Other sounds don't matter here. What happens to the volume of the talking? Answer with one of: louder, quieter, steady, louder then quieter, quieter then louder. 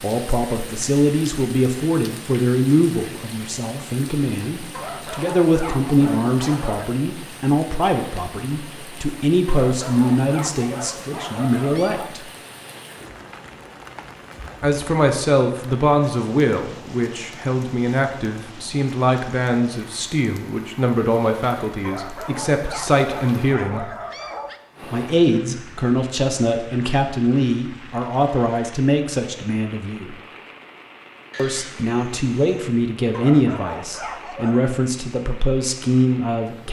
steady.